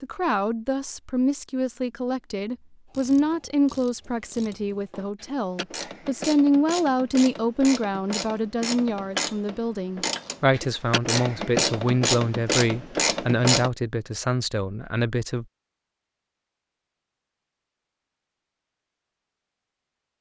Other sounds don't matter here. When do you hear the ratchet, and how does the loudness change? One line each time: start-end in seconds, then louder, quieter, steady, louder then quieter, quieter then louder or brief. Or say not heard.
2.9-13.7 louder.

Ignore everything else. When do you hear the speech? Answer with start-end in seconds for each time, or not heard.
0.0-15.4.